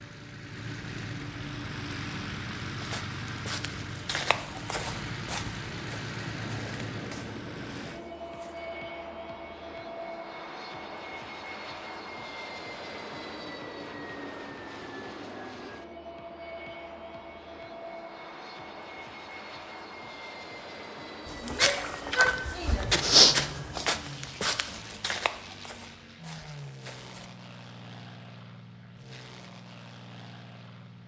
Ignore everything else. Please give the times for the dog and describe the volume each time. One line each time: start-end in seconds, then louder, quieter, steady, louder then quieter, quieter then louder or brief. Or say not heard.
not heard.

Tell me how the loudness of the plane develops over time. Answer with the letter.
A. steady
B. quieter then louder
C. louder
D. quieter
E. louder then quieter
D.